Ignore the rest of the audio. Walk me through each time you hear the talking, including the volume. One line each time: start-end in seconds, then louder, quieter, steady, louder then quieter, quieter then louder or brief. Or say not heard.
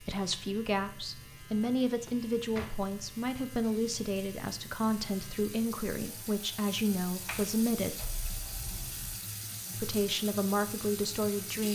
0.0-8.0 steady
9.8-11.6 brief.